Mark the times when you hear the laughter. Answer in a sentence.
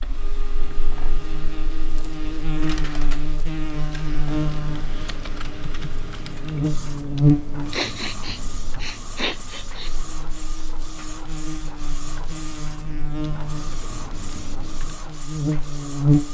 The laughter can't be heard in this clip.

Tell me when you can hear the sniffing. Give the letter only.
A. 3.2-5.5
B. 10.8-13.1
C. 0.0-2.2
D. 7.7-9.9
D.